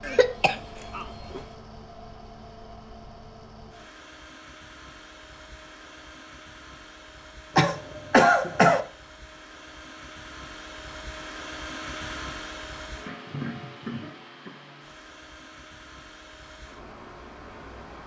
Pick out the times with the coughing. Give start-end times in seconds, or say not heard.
0.0-1.4, 7.5-8.8, 13.1-14.6.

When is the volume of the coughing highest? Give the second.
8 s.